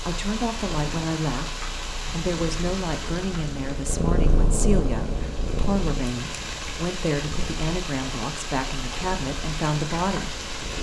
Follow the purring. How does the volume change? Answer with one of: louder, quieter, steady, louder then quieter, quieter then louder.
louder then quieter.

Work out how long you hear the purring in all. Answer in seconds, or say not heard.
11 s.